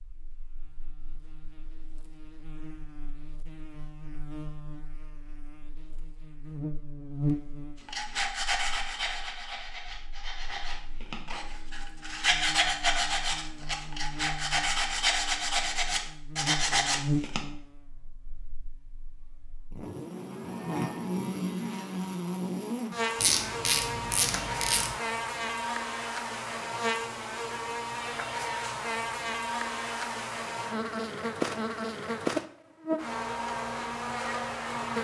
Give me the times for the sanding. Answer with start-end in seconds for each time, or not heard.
7.8-17.4.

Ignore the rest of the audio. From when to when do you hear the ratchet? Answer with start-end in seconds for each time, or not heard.
23.1-24.9.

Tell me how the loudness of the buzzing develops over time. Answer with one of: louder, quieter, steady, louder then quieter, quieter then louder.
louder.